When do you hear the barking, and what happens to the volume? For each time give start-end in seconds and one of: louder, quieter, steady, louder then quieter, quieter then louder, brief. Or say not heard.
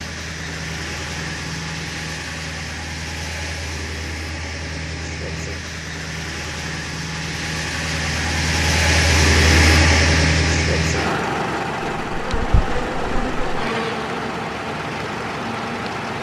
not heard.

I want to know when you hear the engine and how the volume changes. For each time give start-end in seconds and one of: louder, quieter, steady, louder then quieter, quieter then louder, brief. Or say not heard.
0.0-16.1 louder then quieter.